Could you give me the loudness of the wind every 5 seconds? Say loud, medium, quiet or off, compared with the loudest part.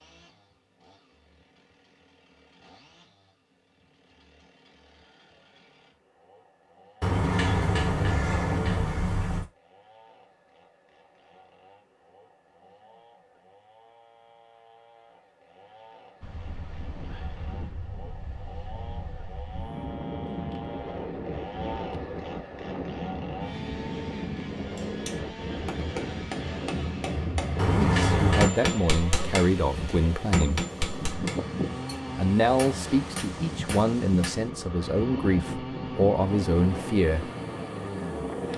off, off, off, medium, loud, loud, loud, loud.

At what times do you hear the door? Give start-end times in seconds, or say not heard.
7.0-9.4, 27.6-28.5.